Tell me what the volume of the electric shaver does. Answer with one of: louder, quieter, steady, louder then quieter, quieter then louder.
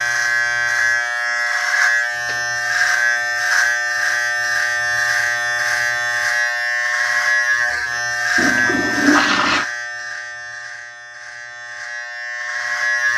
quieter.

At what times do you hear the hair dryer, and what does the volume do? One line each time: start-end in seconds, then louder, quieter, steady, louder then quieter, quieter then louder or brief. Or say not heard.
not heard.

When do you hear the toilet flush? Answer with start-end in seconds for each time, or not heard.
8.3-9.7.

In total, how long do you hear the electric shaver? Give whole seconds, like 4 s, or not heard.
13 s.